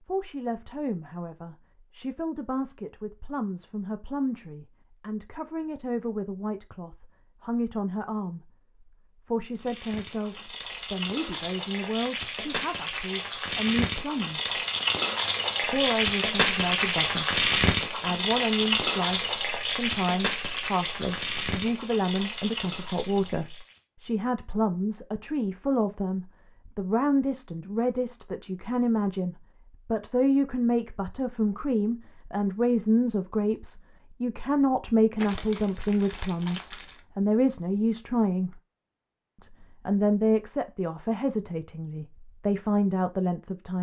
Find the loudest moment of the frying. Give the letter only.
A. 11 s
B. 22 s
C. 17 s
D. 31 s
C.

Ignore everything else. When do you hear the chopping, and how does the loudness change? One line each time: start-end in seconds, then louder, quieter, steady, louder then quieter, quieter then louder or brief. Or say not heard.
not heard.